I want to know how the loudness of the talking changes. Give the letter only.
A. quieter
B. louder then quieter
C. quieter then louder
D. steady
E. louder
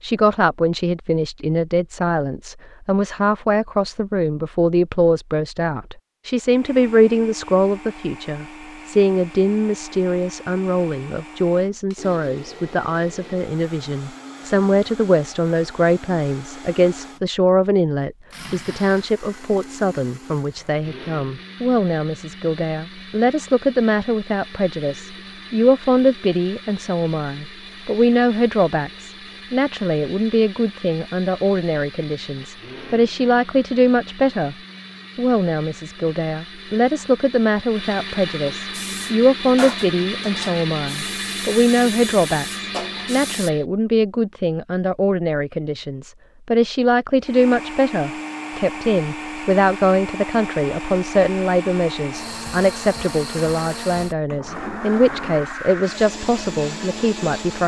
D.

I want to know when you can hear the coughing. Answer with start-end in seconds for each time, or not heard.
not heard.